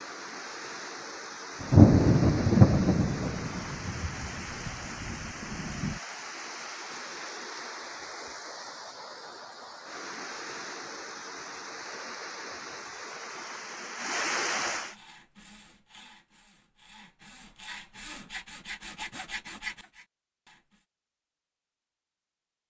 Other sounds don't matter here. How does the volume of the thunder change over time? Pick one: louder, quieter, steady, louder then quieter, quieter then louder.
quieter.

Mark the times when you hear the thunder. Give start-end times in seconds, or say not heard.
1.6-6.0.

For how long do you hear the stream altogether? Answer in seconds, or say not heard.
15 s.